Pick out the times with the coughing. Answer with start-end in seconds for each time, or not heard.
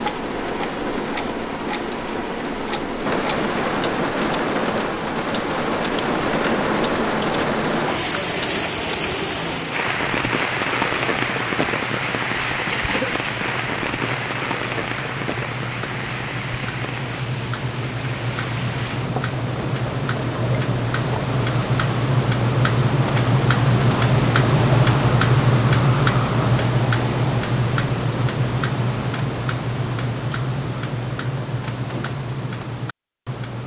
12.7-13.2.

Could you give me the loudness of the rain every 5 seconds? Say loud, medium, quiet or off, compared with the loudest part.
loud, loud, loud, medium, off, off, off.